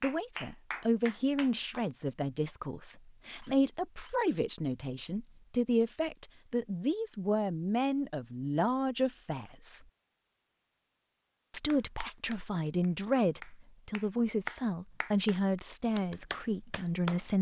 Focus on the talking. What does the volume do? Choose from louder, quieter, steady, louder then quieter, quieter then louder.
steady.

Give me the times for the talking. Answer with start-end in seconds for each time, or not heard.
0.0-9.8, 11.5-17.3.